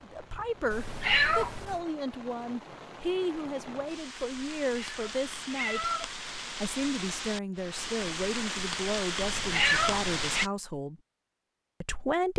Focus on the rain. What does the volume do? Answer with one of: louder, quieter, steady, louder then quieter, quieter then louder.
louder.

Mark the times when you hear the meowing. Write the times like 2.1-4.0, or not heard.
0.7-1.8, 4.6-6.4, 9.2-10.4.